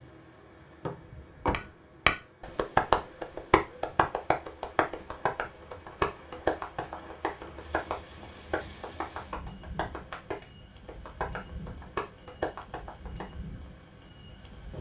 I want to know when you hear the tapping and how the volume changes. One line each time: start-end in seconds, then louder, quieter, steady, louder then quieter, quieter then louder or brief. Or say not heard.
1.5-13.2 quieter.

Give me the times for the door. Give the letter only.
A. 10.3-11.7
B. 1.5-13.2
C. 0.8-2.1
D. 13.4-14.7
C.